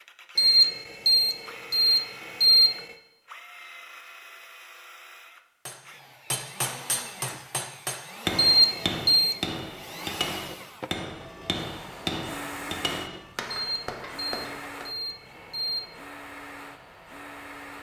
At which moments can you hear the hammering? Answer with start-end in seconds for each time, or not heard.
5.7-14.9.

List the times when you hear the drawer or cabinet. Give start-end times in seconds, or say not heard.
not heard.